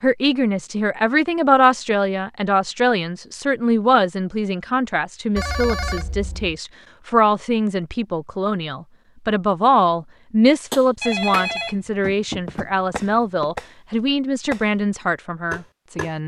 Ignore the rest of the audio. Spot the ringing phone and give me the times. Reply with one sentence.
You can hear the ringing phone from 5.3 to 6.6 s and from 11.0 to 13.6 s.